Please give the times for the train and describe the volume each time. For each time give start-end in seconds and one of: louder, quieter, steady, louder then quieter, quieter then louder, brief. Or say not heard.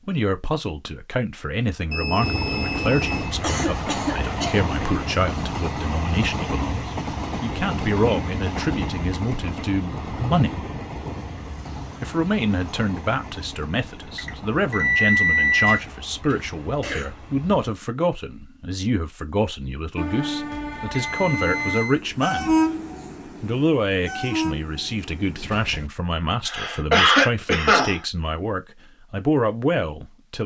2.2-17.7 quieter
19.9-25.9 louder then quieter.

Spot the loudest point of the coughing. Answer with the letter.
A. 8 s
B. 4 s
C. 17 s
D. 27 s
D.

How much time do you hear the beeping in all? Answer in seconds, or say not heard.
4 s.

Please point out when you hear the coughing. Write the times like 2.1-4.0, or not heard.
3.4-4.6, 15.7-17.1, 26.4-28.0.